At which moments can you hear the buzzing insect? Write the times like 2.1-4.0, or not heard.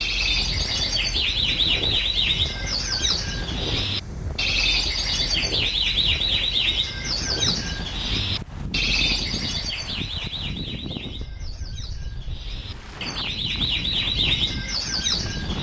not heard.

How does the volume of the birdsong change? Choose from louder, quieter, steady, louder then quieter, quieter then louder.
quieter then louder.